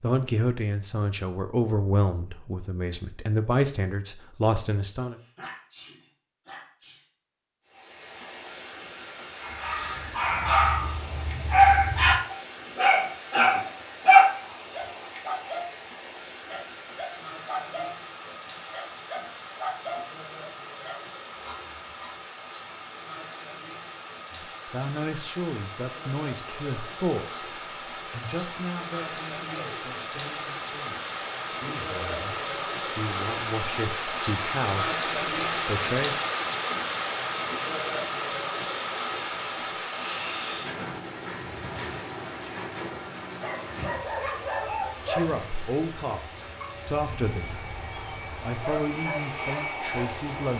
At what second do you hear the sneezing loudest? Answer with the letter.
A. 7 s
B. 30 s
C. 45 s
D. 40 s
D.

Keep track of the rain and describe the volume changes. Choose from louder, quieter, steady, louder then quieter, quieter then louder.
louder then quieter.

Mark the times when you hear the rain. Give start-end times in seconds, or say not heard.
7.7-50.5.